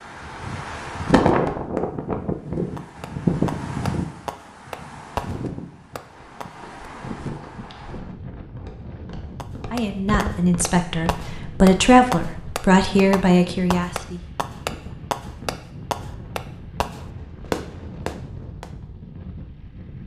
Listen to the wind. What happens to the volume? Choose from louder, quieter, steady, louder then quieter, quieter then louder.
quieter.